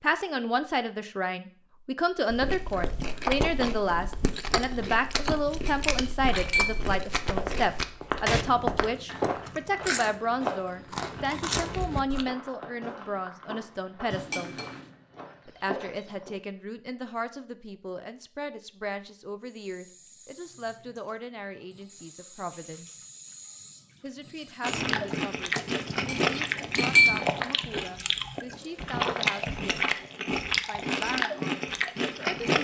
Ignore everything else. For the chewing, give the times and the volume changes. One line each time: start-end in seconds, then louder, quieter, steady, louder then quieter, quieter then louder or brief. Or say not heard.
2.3-12.2 steady
24.6-32.5 steady.